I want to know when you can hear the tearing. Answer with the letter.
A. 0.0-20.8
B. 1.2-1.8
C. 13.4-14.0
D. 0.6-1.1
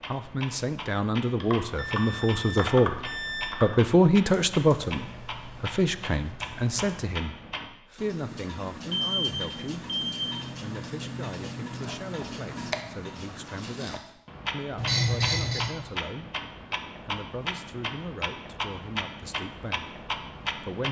C.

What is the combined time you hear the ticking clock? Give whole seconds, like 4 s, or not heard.
21 s.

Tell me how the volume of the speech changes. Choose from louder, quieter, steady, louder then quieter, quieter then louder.
quieter.